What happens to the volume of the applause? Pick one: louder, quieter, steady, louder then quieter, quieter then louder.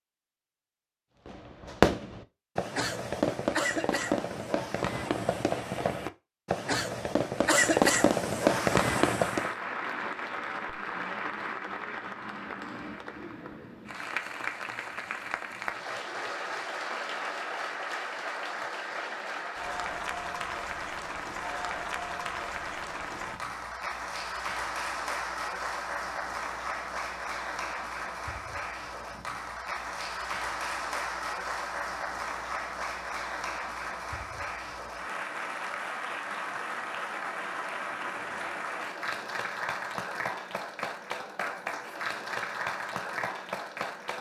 steady.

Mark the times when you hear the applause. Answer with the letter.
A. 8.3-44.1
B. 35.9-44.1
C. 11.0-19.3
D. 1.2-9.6
A.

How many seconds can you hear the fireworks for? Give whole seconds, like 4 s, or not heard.
8 s.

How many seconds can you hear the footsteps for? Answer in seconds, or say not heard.
not heard.